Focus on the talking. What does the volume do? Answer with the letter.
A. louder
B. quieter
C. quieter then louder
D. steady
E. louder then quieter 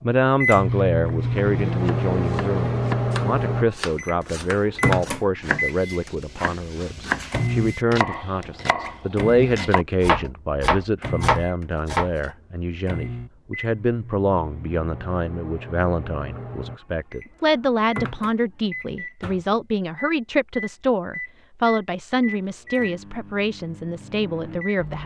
D.